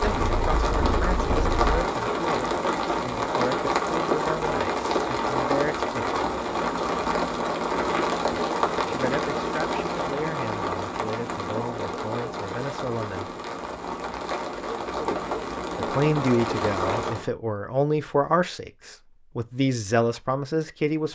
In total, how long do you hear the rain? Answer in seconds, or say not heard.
17 s.